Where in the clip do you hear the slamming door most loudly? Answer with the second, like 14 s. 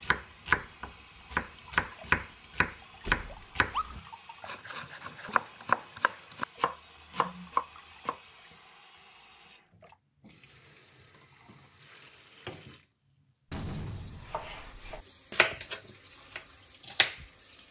14 s.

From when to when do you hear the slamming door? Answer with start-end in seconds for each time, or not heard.
3.0-3.5, 13.5-14.8.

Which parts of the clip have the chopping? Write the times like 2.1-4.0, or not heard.
0.0-8.2, 14.3-17.2.